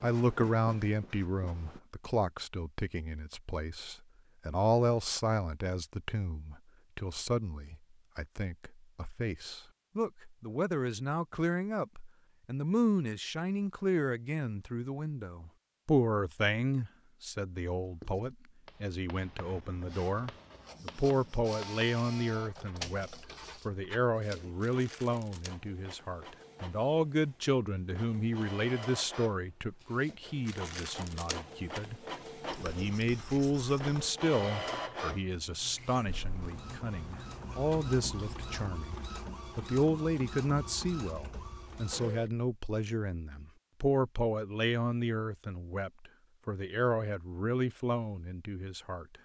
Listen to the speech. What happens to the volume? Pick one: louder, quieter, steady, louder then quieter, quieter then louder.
steady.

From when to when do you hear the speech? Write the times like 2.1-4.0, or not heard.
0.0-32.0, 32.6-49.0.